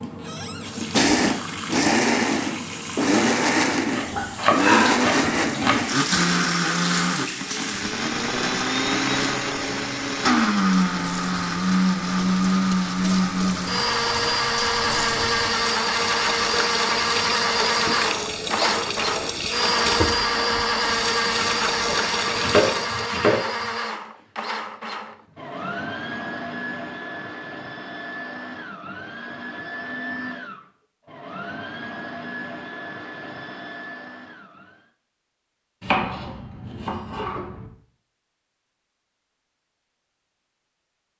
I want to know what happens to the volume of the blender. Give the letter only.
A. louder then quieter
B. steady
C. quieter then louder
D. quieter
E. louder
D.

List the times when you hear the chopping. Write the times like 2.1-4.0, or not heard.
3.9-5.9, 21.9-23.4, 35.8-37.7.